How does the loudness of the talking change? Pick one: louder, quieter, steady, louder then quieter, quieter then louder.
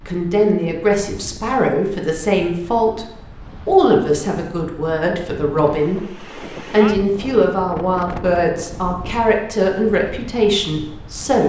steady.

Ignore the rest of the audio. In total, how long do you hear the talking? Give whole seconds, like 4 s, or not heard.
11 s.